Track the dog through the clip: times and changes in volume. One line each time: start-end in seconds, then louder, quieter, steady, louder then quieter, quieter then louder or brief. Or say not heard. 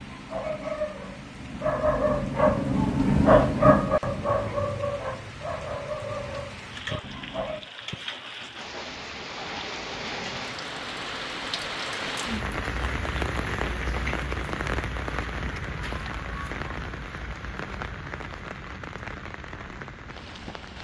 0.0-7.7 louder then quieter.